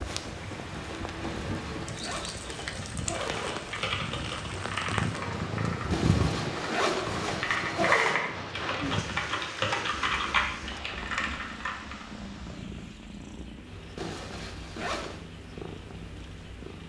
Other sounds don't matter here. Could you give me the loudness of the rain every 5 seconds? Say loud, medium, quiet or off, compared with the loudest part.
loud, loud, medium, quiet.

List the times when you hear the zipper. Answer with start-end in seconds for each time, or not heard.
1.2-3.8, 5.9-8.2, 13.9-15.2.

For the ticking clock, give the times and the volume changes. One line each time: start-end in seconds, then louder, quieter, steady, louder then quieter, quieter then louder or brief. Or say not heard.
not heard.